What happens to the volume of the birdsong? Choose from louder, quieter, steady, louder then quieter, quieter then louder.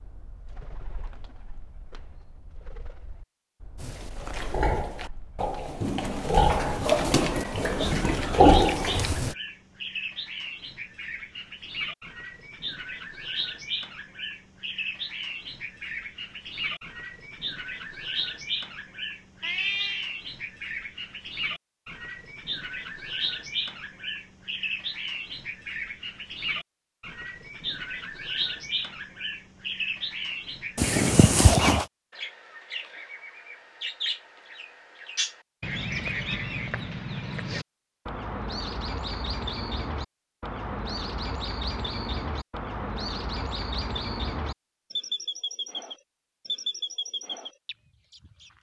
louder.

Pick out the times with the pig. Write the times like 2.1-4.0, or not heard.
3.8-9.3.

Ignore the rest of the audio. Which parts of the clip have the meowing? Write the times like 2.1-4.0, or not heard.
19.4-20.1, 30.8-31.9.